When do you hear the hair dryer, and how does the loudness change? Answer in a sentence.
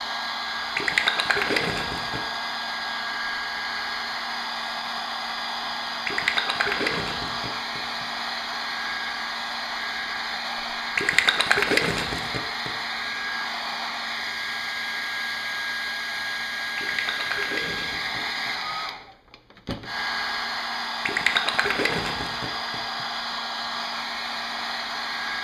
You can hear the hair dryer from 0.0 to 25.4 s, at a steady volume.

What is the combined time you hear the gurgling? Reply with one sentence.
You can hear the gurgling for 9 seconds altogether.